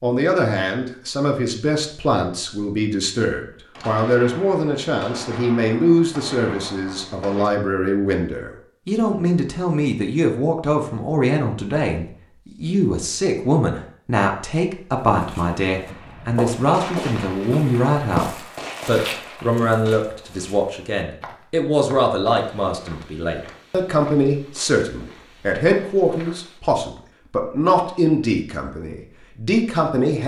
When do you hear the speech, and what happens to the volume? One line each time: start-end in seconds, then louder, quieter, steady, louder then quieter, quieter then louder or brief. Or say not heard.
0.0-30.2 steady.